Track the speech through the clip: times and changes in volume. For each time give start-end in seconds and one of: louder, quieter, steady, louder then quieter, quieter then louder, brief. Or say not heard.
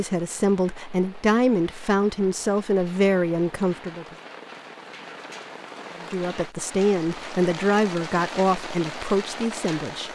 0.0-4.0 steady
6.0-10.0 steady.